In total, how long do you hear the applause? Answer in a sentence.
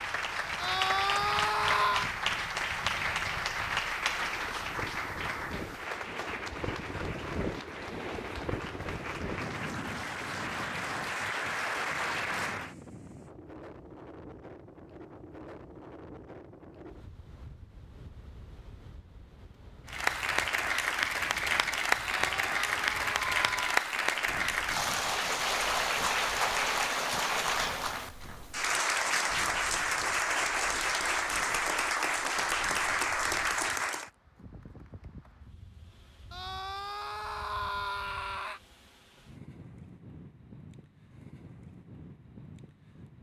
You can hear the applause for 27 seconds altogether.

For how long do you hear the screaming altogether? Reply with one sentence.
The screaming can be heard for 5 seconds in total.